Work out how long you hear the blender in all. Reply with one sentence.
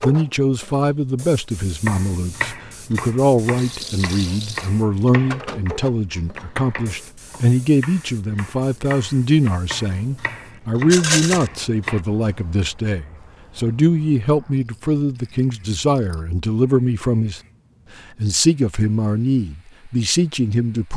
The blender can't be heard in this clip.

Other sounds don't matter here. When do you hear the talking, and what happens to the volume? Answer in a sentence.
You can hear the talking from 0.0 to 17.4 s, at a steady volume; and briefly from 18.1 to 20.9 s.